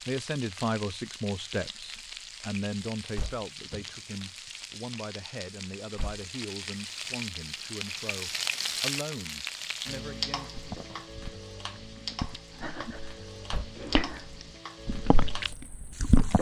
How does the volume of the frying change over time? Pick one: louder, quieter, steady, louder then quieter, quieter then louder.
louder then quieter.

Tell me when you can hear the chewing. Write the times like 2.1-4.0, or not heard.
10.6-16.3.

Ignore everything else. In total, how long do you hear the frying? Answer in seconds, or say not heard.
16 s.